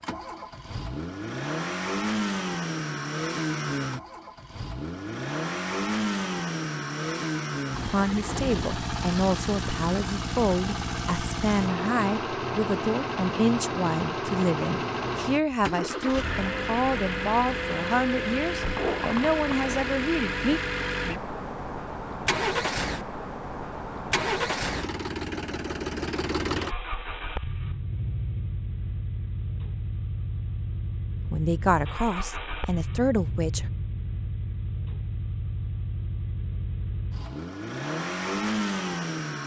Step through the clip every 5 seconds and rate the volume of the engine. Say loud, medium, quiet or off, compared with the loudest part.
loud, loud, loud, loud, loud, loud, medium, loud.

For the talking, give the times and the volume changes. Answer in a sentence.
You can hear the talking from 7.8 to 20.6 s, at a steady volume; and briefly from 31.3 to 33.7 s.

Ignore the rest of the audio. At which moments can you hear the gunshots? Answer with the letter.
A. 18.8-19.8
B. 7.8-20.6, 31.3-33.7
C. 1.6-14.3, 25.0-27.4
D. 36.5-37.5
A.